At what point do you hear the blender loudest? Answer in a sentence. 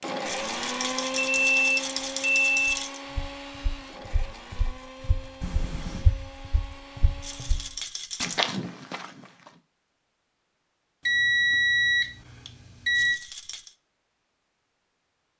The loudest moment of the blender is at 1 second.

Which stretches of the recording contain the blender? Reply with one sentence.
You can hear the blender from 0.0 to 8.0 s.